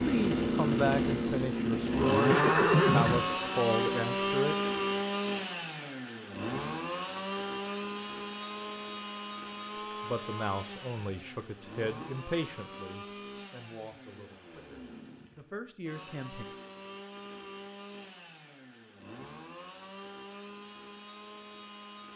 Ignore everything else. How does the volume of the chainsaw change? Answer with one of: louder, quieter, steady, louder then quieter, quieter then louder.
quieter.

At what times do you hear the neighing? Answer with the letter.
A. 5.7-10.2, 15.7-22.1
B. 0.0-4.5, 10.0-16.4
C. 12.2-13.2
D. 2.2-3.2
D.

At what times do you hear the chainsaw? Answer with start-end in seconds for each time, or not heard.
0.0-22.1.